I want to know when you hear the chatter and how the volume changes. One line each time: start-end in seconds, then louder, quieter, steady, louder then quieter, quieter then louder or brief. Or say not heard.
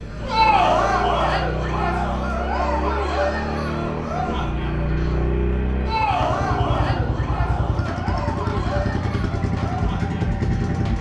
0.1-10.8 quieter.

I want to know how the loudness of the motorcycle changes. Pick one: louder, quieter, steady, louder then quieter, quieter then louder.
steady.